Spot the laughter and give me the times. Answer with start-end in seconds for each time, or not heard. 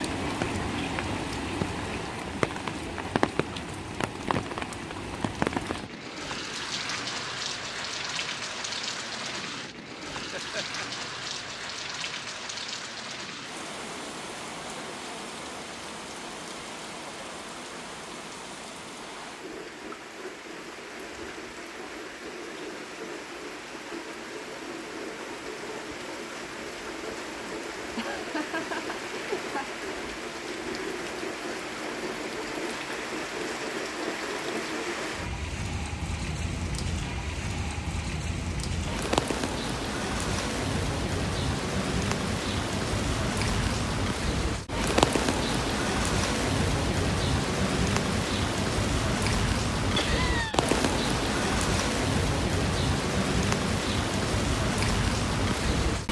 10.3-11.5, 27.9-29.8, 50.0-50.8.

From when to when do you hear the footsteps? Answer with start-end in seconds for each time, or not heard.
not heard.